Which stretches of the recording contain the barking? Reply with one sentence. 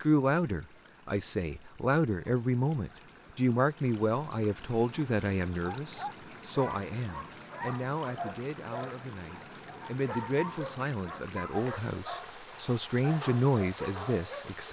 The barking can be heard from 5.6 to 14.5 s.